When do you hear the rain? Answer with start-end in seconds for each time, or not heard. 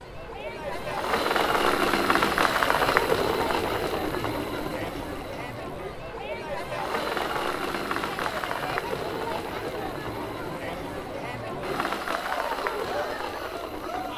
not heard.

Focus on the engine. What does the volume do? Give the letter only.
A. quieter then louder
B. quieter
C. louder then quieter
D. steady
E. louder
B.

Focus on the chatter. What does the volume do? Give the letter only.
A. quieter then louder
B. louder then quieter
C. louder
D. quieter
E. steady
E.